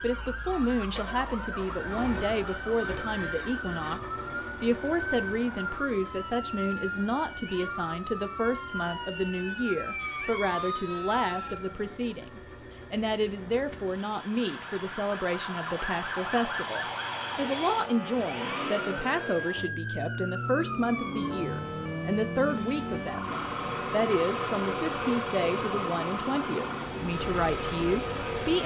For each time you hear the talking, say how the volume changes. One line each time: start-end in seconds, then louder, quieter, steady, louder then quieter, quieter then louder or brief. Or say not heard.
0.0-28.6 steady.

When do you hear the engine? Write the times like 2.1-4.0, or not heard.
0.0-28.6.